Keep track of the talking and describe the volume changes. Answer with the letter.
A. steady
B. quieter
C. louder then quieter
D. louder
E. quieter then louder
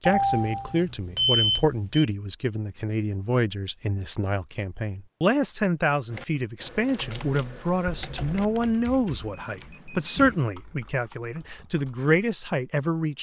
A.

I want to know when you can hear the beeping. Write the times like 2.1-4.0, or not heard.
0.1-2.0, 7.8-10.5.